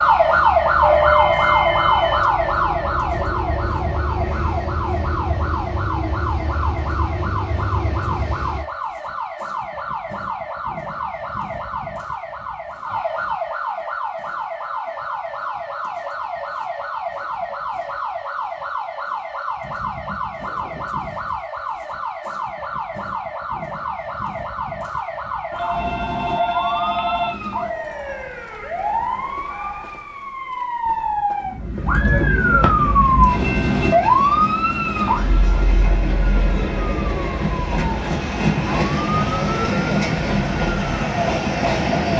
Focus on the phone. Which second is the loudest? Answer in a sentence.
The loudest moment of the phone is at 1 second.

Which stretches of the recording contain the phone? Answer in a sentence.
The phone can be heard from 0.8 to 2.2 s and from 25.5 to 27.4 s.